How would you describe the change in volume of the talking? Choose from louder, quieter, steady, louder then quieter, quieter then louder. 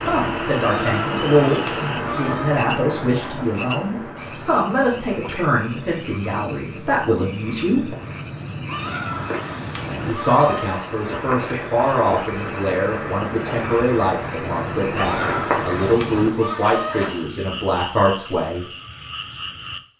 steady.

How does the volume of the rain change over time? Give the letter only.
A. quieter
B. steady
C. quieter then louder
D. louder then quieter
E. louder
C.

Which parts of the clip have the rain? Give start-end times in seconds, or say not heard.
0.0-15.9.